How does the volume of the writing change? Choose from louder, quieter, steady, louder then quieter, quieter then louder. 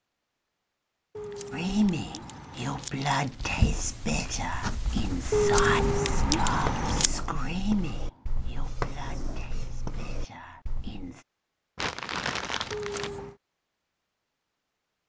steady.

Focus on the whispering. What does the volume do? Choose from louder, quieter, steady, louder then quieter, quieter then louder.
quieter.